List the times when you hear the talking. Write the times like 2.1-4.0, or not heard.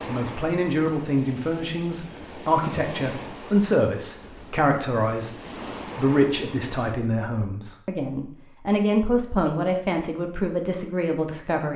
0.1-5.3, 6.0-11.7.